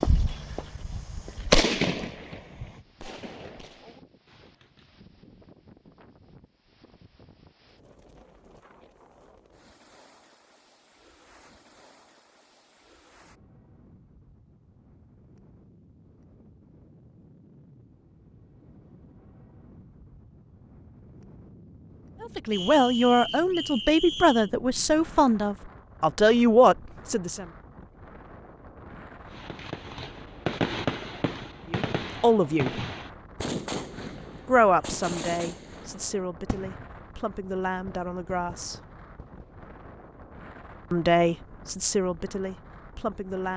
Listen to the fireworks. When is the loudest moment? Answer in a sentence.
The volume of the fireworks peaks at 2 seconds.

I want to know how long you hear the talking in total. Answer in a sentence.
You can hear the talking for 13 seconds altogether.